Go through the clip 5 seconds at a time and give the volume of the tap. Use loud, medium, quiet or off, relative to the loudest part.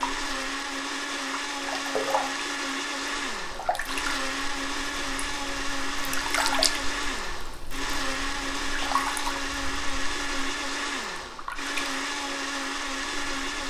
loud, loud, medium.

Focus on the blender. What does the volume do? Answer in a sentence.
The loudness of the blender stays about the same.